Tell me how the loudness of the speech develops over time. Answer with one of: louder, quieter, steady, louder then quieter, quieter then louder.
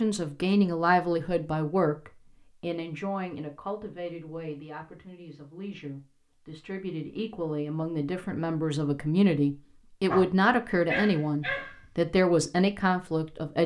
quieter then louder.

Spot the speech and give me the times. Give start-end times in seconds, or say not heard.
0.0-13.6.